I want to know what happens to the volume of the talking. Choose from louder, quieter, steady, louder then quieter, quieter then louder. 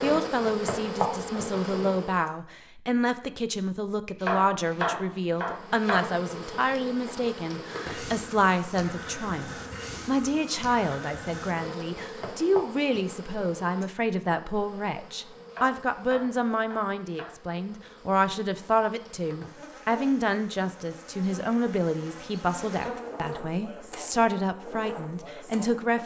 steady.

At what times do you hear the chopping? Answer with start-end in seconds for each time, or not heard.
4.2-6.2, 15.5-17.4.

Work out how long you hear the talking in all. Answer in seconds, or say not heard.
26 s.